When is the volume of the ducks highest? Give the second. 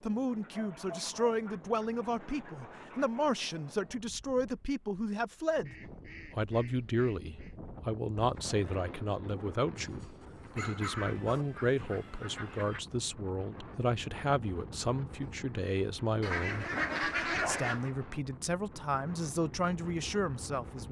17 s.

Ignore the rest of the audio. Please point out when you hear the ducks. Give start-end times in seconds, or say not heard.
0.2-3.2, 5.7-7.6, 10.8-12.8, 16.2-17.9.